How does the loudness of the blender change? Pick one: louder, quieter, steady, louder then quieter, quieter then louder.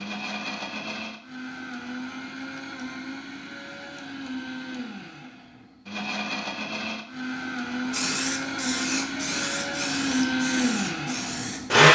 louder.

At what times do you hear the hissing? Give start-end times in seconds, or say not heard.
7.9-11.8.